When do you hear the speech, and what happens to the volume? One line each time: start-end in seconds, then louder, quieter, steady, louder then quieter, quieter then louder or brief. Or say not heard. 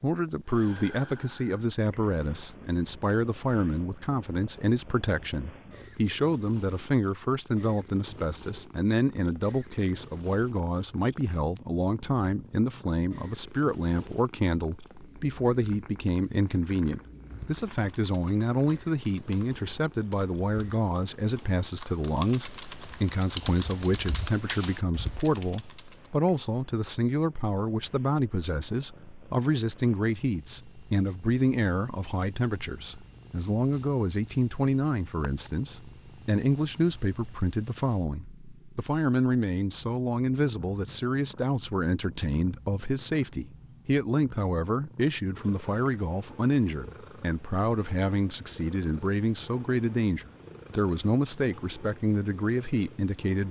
0.0-53.4 steady.